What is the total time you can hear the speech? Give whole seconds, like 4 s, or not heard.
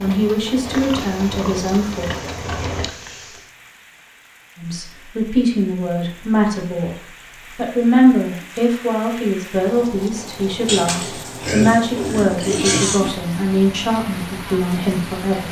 12 s.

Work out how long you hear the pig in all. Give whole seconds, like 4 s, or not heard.
5 s.